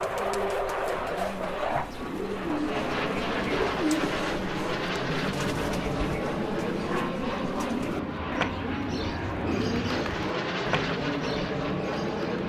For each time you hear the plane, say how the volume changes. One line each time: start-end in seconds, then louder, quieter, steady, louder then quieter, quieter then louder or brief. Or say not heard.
0.0-12.4 steady.